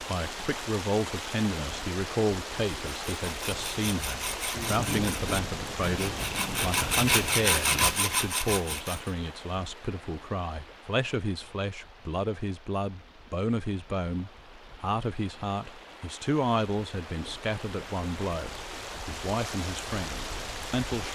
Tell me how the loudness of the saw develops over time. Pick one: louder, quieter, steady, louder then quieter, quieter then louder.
louder.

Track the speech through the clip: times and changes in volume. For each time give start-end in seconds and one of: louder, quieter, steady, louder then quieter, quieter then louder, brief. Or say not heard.
0.1-21.0 steady.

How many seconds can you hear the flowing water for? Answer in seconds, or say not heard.
21 s.